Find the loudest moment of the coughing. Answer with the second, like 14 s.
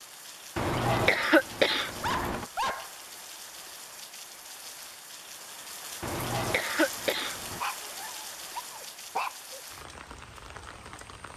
1 s.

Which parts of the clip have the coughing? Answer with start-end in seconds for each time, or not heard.
0.6-2.5, 6.0-7.6.